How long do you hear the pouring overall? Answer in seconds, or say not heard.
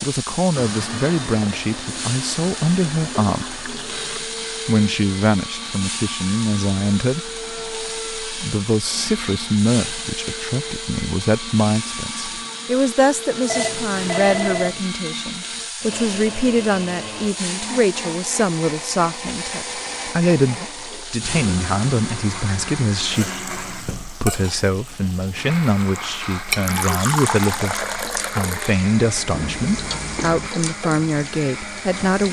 4 s.